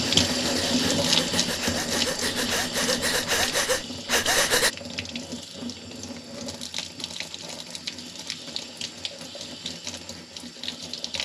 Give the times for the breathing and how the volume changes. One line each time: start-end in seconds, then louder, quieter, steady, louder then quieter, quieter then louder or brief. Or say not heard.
0.0-4.7 louder.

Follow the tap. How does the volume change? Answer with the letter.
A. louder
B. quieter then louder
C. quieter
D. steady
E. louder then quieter
C.